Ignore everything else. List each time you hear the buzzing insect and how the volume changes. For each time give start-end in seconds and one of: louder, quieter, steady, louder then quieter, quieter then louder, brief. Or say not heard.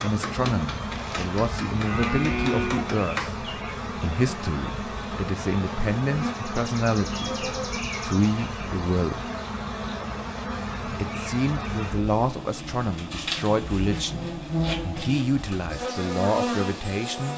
0.0-17.3 steady.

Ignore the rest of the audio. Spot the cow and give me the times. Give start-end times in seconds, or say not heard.
0.9-2.9.